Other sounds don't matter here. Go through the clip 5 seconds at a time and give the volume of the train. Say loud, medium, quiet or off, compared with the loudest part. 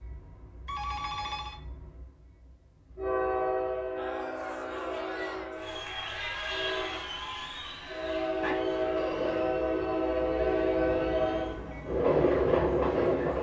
medium, medium, loud.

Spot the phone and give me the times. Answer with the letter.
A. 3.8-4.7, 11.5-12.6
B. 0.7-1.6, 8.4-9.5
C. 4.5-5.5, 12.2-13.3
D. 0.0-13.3
B.